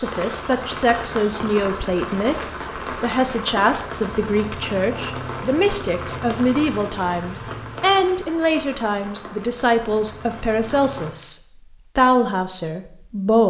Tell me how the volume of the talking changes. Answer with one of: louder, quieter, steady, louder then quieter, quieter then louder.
steady.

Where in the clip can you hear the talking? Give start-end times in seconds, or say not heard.
0.0-13.4.